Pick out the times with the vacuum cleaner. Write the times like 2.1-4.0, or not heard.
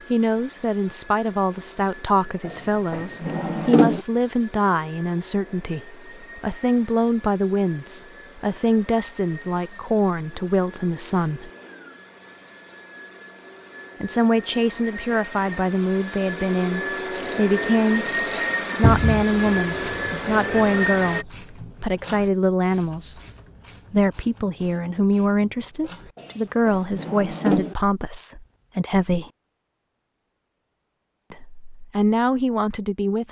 0.0-21.2.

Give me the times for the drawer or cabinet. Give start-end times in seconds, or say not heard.
2.5-4.0, 18.8-19.2, 26.1-27.8.